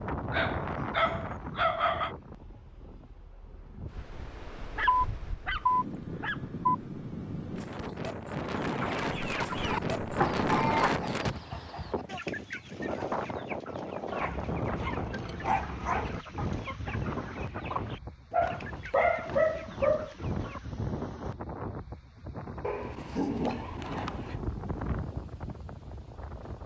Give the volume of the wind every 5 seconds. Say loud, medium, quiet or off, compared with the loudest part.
medium, loud, loud, medium, medium, medium.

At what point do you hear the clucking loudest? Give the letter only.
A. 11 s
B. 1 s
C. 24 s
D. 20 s
A.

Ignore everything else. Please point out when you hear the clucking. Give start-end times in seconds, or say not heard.
8.5-20.7.